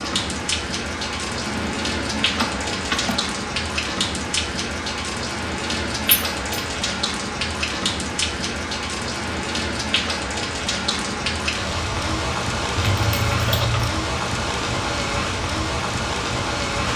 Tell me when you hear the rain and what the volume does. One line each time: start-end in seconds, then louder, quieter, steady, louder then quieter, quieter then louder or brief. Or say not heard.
0.0-16.9 steady.